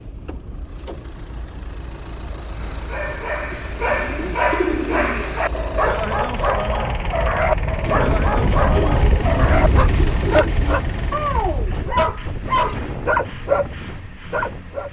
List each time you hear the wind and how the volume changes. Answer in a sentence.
You can hear the wind from 0.0 to 14.8 s, getting louder then quieter.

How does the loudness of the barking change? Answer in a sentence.
The loudness of the barking stays about the same.